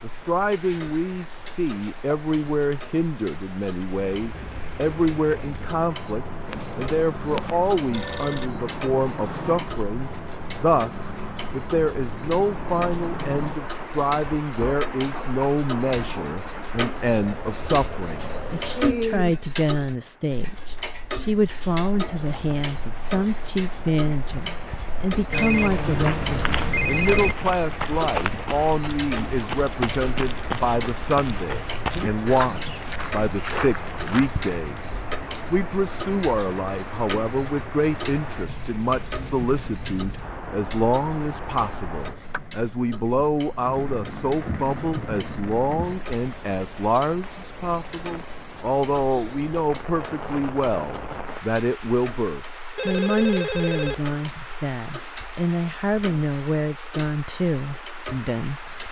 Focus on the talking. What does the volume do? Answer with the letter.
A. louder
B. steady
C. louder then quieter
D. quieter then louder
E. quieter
B.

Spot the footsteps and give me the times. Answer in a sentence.
The footsteps can be heard from 25.5 to 34.5 s.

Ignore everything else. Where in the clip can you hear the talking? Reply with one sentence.
You can hear the talking from 0.0 to 58.8 s.